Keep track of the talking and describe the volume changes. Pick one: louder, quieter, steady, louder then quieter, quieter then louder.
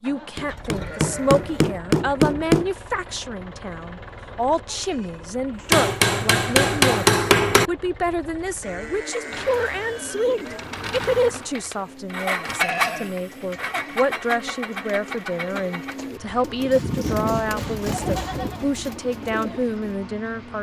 steady.